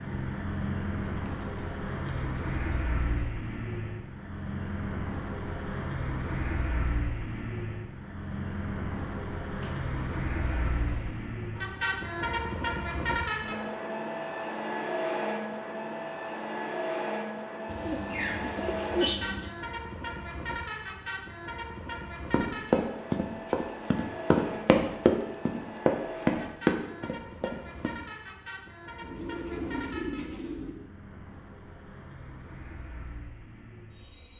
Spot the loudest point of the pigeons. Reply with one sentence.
The volume of the pigeons peaks at 19 seconds.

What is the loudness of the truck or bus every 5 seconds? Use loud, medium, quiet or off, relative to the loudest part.
loud, loud, loud, loud, medium, medium, quiet.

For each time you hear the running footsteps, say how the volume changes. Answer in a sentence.
You can hear the running footsteps from 22.3 to 27.9 s, at a steady volume.